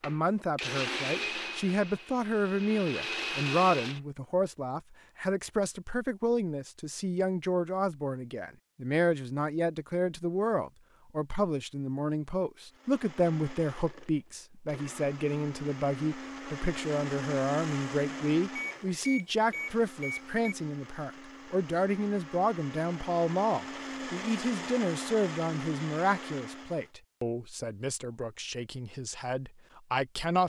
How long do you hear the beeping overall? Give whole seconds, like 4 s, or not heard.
2 s.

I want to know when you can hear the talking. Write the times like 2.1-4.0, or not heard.
0.0-30.4.